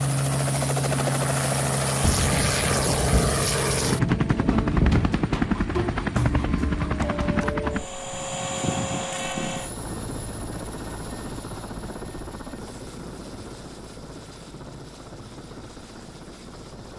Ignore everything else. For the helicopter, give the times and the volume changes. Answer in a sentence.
You can hear the helicopter from 0.0 to 16.9 s, getting quieter.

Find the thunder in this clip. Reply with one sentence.
You can hear the thunder from 2.0 to 5.2 s.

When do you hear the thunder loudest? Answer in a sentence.
The volume of the thunder peaks at 5 seconds.